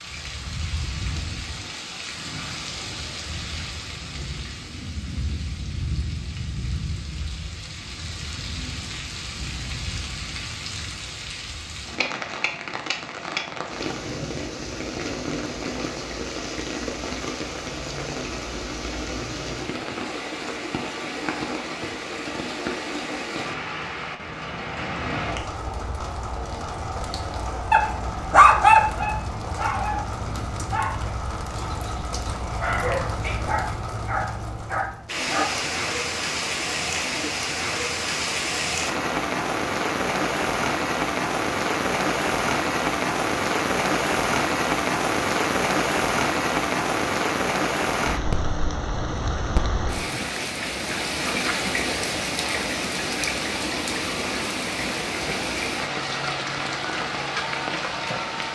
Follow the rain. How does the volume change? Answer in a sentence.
The loudness of the rain goes up.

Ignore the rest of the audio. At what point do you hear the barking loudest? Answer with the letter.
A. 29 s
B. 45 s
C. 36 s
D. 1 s
A.